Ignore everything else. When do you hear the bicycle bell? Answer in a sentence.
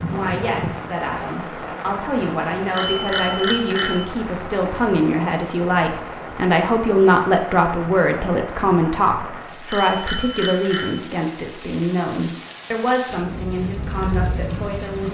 You can hear the bicycle bell from 2.7 to 4.0 s and from 9.7 to 11.0 s.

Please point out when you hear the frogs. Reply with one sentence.
You can't hear the frogs here.